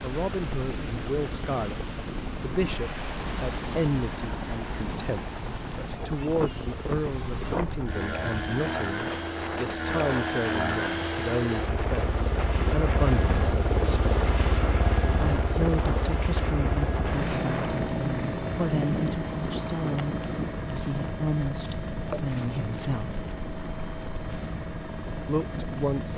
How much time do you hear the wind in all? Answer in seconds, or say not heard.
26 s.